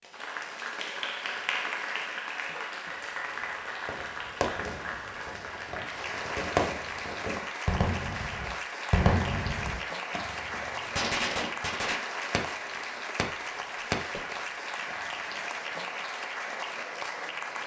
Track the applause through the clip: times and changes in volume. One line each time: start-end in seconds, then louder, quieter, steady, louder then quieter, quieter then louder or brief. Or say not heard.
0.0-17.6 steady.